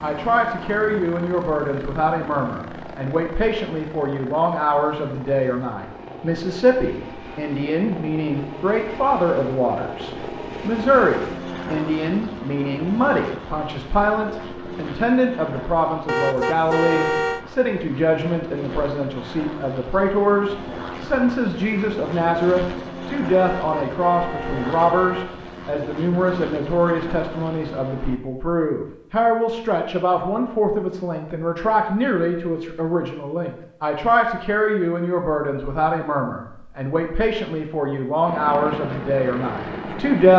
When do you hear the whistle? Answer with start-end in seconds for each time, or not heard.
not heard.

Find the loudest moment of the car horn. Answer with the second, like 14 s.
17 s.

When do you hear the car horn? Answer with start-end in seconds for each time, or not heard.
16.1-17.4, 23.4-25.3.